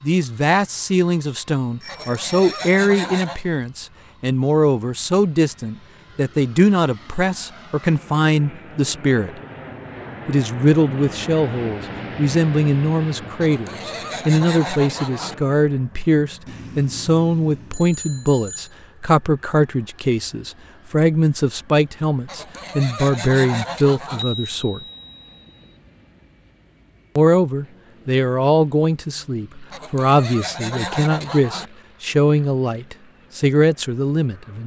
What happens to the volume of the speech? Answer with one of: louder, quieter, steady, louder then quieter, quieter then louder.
steady.